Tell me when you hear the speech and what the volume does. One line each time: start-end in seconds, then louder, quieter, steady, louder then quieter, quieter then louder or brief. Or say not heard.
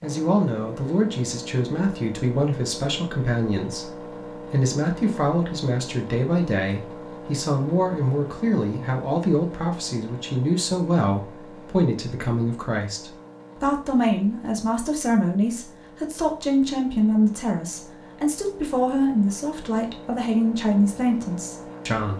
0.0-22.1 steady.